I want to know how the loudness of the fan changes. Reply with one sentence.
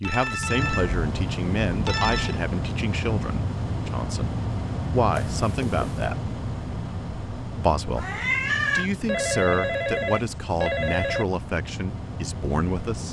The volume of the fan goes down.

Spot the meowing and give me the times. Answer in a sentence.
You can hear the meowing from 8.0 to 8.9 s.